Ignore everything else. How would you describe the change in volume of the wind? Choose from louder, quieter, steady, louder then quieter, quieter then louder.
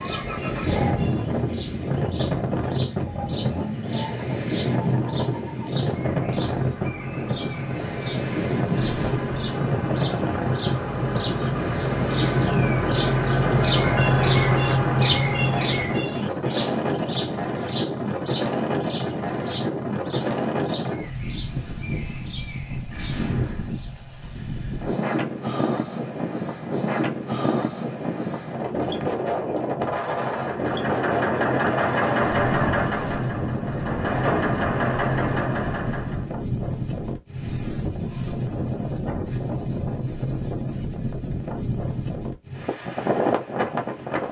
steady.